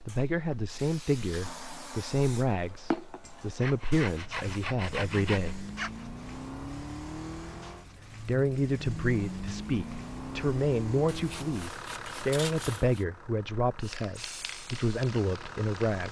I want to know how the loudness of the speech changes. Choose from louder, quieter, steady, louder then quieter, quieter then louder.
steady.